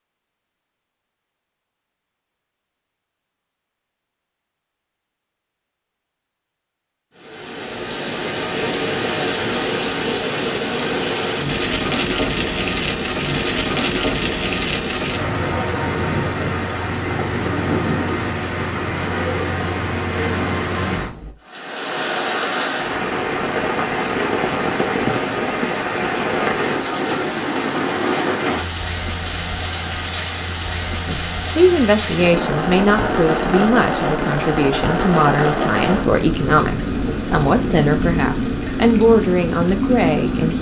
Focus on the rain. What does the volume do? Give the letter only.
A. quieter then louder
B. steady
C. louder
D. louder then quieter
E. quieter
B.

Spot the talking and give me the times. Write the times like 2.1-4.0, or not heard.
31.1-40.5.